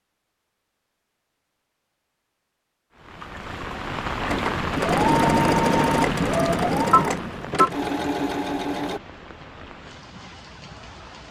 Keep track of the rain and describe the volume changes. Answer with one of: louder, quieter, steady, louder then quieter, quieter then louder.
quieter.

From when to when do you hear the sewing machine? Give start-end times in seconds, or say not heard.
4.2-9.0.